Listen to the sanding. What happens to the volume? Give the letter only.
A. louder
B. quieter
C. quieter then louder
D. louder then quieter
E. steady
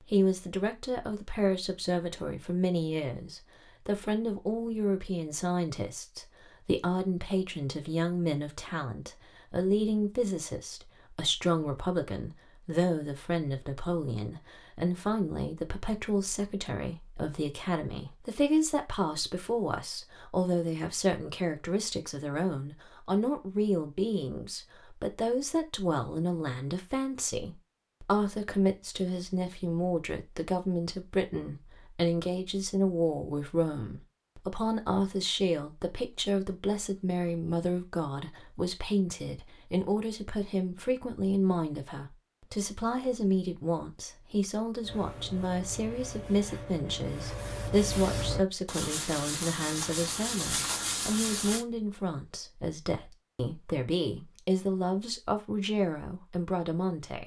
A.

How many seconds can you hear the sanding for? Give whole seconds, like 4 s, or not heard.
7 s.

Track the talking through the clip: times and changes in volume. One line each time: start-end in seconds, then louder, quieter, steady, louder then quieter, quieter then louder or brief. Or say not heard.
0.0-57.2 steady.